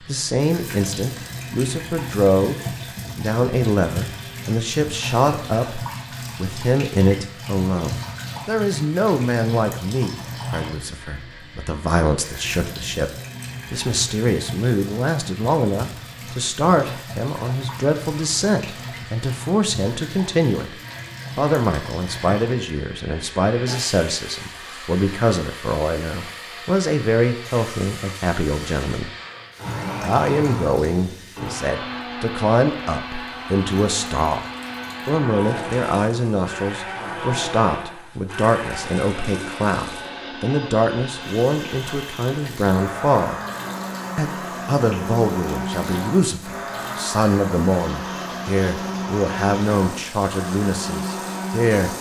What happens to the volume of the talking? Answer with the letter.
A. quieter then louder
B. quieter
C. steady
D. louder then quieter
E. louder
C.